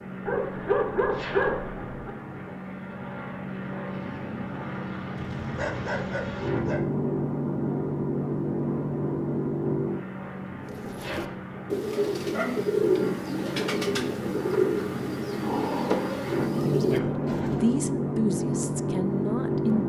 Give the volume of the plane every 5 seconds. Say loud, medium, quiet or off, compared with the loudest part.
medium, loud, medium, loud.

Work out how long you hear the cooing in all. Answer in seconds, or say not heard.
7 s.